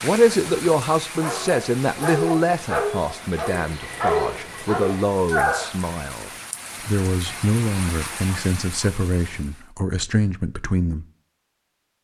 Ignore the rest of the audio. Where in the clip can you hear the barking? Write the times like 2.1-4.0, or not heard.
1.1-5.8.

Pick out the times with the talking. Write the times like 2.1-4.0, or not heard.
0.0-11.1.